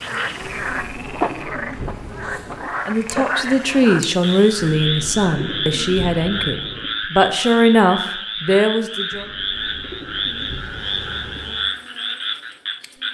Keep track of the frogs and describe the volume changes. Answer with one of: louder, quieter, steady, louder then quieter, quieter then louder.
steady.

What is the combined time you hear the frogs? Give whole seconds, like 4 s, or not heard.
13 s.